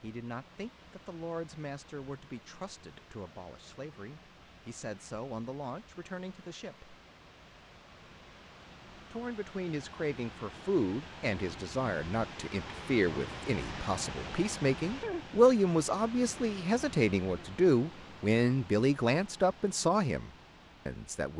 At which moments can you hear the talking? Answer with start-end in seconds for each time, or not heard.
0.0-7.0, 9.1-21.3.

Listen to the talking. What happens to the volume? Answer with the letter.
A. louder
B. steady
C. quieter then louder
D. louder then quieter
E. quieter
A.